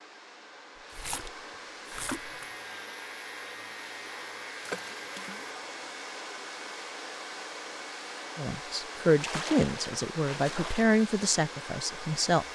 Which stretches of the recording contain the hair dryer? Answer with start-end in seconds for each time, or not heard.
0.0-12.4.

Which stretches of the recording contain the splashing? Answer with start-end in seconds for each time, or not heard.
0.8-2.4, 4.7-5.6, 9.2-10.8.